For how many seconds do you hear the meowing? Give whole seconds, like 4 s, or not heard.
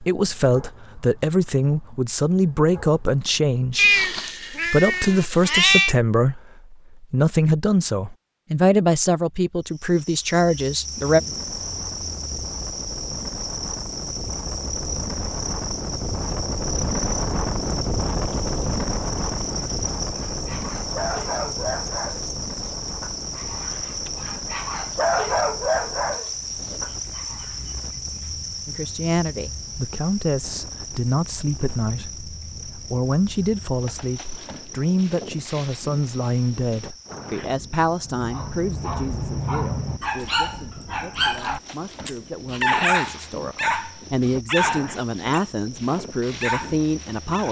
2 s.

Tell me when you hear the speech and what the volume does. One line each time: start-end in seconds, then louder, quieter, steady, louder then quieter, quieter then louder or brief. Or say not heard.
0.0-11.2 steady
28.6-47.4 quieter then louder.